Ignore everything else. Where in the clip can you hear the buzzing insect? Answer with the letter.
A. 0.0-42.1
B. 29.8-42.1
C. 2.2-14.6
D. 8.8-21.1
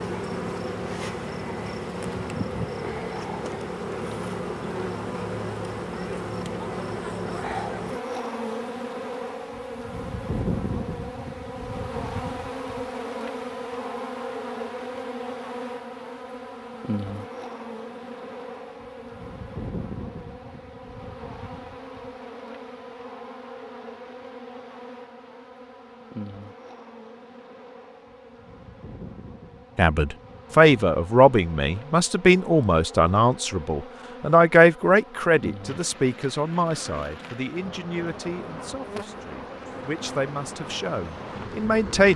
A.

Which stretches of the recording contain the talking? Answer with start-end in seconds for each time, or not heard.
29.8-42.1.